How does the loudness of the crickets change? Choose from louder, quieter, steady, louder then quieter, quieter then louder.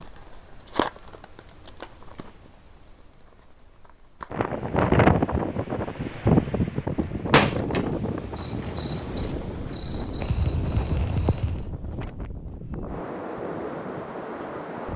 quieter then louder.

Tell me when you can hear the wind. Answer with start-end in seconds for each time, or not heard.
4.3-14.9.